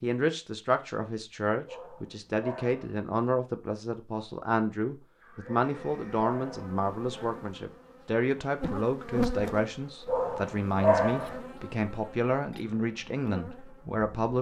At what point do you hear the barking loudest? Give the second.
11 s.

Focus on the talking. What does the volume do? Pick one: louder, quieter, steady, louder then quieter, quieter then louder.
steady.